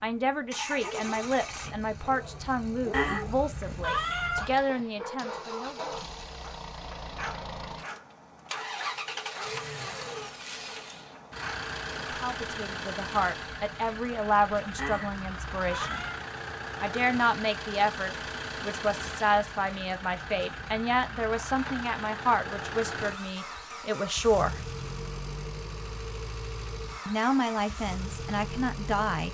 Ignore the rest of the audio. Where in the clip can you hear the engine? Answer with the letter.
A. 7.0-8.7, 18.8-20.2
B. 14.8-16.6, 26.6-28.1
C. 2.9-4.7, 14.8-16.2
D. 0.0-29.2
D.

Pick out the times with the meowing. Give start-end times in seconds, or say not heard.
2.9-4.7, 14.8-16.2.